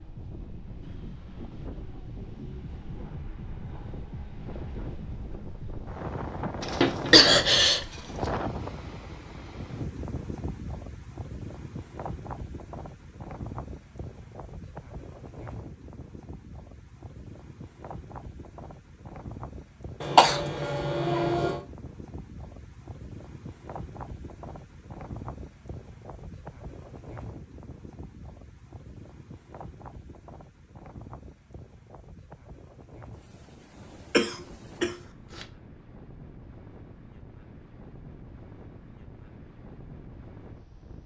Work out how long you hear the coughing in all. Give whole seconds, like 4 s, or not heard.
4 s.